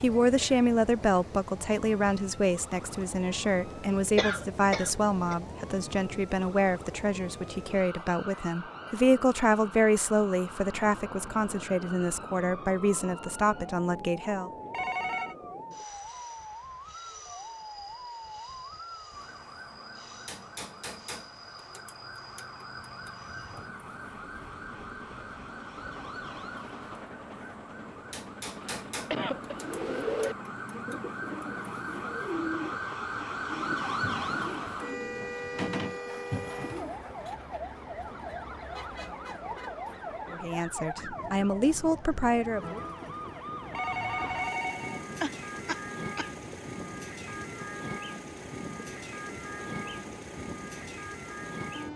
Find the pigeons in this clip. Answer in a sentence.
You can hear the pigeons from 29.4 to 37.0 s.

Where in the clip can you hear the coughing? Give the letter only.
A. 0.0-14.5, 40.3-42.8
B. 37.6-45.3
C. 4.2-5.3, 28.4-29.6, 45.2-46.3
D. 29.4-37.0
C.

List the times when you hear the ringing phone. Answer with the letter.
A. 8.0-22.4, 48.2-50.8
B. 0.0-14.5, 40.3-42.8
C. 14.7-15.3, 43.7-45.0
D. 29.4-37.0
C.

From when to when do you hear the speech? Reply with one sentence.
The speech can be heard from 0.0 to 14.5 s and from 40.3 to 42.8 s.